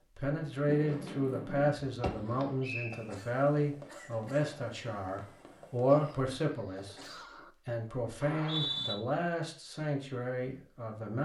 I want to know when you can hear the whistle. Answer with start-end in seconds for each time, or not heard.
2.6-3.2, 8.2-8.9.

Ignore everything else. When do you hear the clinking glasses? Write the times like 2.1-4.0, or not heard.
not heard.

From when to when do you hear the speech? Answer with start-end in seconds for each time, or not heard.
0.1-7.0, 7.7-11.2.